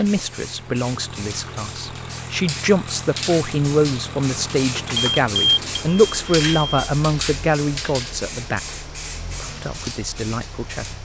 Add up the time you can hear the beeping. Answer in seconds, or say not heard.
2 s.